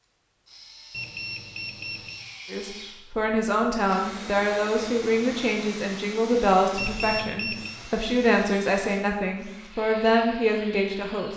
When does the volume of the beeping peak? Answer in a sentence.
The loudest moment of the beeping is at 7 seconds.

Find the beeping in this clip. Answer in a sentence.
The beeping can be heard from 0.9 to 2.2 s and from 6.8 to 7.8 s.